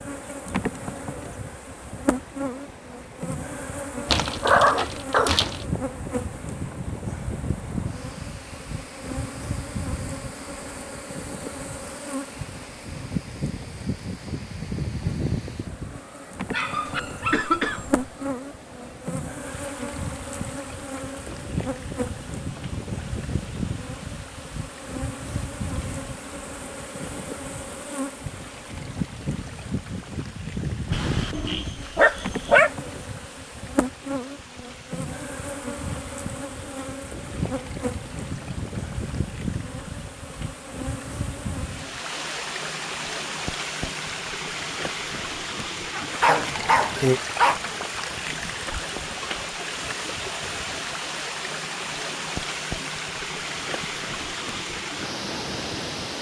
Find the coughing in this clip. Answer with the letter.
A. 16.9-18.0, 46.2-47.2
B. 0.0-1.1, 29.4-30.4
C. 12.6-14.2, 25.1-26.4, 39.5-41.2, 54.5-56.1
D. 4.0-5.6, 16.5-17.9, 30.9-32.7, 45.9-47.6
A.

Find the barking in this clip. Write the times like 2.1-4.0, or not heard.
4.0-5.6, 16.5-17.9, 30.9-32.7, 45.9-47.6.